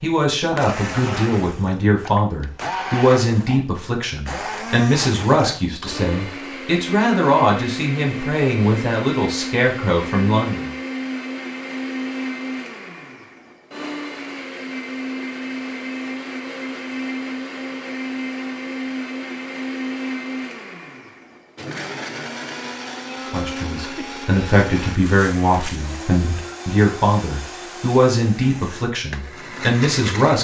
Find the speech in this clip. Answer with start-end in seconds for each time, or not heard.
0.0-10.7, 23.3-30.3.